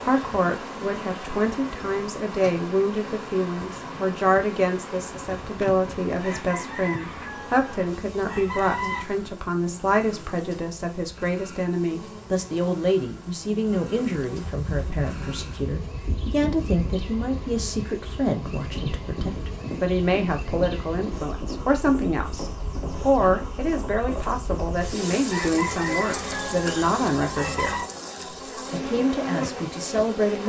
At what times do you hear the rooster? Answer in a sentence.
You can hear the rooster from 6.2 to 9.1 s and from 25.2 to 27.9 s.